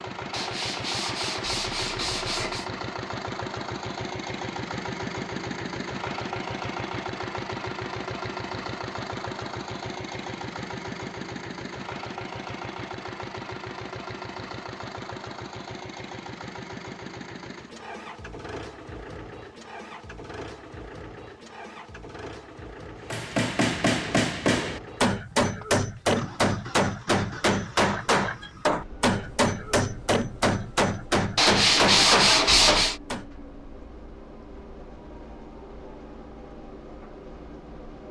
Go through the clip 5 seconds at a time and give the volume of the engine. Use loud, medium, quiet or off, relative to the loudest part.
loud, loud, loud, medium, medium, medium, quiet, medium.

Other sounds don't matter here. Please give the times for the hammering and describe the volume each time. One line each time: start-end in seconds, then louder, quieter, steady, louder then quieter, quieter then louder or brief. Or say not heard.
23.1-33.2 steady.